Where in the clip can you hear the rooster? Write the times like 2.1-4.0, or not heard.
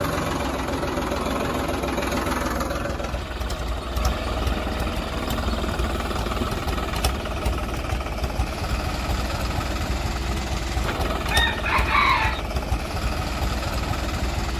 10.8-12.4.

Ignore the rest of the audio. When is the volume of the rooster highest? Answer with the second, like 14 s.
12 s.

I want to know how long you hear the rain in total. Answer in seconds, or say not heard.
not heard.